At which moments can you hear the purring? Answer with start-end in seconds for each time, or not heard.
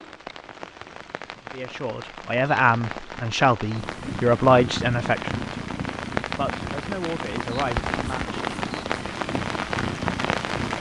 3.8-10.7.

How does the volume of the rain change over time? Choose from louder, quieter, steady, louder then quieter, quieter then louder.
louder.